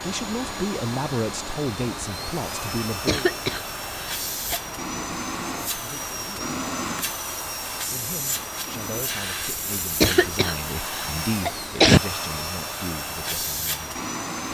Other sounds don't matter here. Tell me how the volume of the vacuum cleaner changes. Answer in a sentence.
The loudness of the vacuum cleaner stays about the same.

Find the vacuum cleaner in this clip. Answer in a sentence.
You can hear the vacuum cleaner from 0.0 to 14.4 s.